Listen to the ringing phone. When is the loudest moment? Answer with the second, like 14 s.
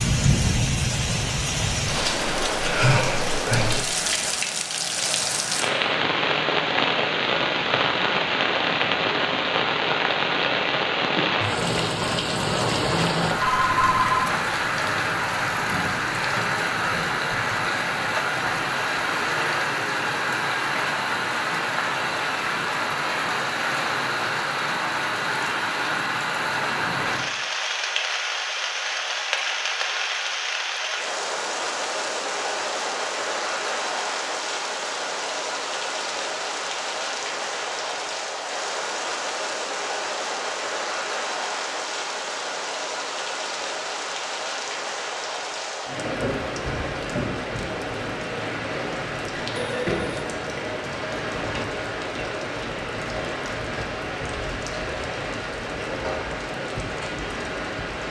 14 s.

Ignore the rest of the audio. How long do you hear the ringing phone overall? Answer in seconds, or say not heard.
2 s.